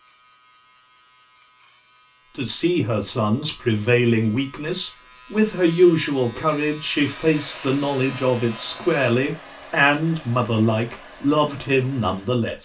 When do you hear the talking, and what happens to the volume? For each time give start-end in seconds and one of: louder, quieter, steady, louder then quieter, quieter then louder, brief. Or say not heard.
2.4-12.6 steady.